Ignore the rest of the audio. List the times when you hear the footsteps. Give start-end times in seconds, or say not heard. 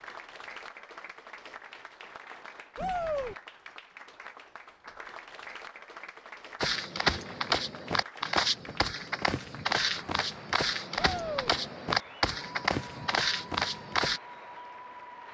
6.6-14.2.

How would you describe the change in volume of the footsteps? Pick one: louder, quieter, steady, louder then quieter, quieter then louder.
steady.